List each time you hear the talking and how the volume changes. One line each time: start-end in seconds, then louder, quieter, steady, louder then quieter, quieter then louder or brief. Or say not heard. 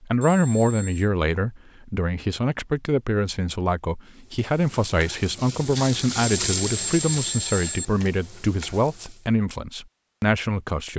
0.0-10.9 steady.